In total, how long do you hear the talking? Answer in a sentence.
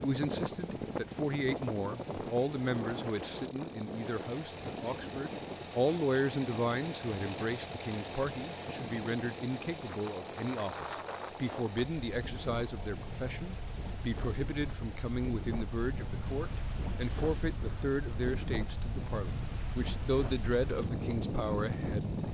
You can hear the talking for 22 seconds altogether.